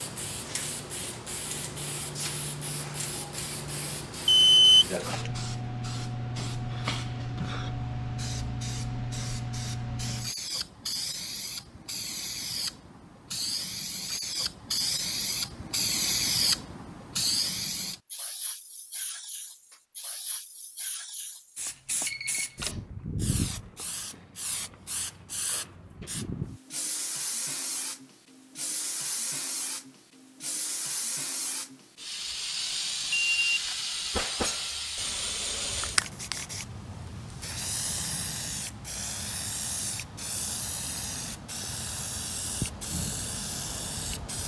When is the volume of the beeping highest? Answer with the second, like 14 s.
5 s.